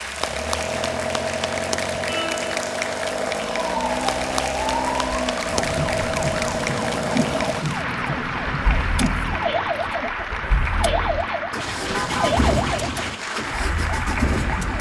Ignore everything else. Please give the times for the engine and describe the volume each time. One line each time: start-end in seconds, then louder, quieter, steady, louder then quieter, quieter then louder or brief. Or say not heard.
0.0-14.7 quieter then louder.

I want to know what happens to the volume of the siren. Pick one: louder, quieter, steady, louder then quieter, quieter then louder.
steady.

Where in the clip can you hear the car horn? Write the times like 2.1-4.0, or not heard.
2.0-2.6, 11.8-12.3.